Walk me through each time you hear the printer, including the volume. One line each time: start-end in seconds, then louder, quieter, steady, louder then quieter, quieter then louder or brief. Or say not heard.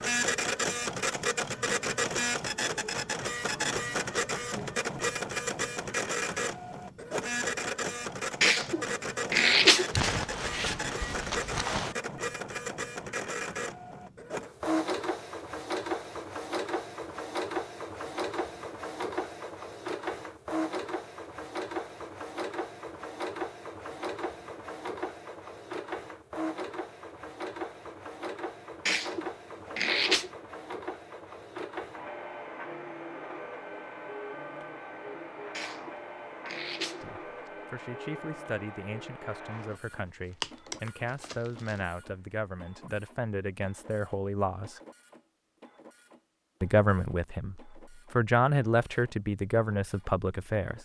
0.0-50.7 quieter.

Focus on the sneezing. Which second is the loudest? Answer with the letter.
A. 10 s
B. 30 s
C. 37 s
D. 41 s
A.